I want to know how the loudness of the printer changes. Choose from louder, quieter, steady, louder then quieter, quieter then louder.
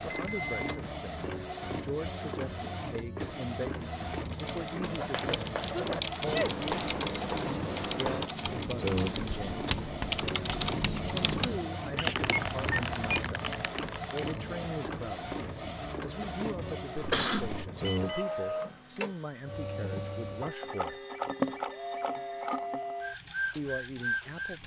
steady.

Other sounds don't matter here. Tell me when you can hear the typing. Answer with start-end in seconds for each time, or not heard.
4.2-14.5.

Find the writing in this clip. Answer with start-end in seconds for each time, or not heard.
4.8-11.4.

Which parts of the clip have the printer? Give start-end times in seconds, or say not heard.
0.0-24.6.